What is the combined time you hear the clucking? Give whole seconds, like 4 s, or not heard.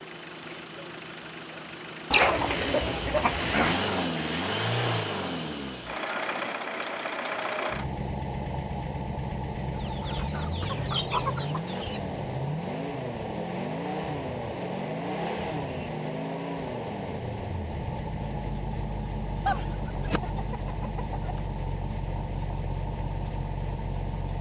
6 s.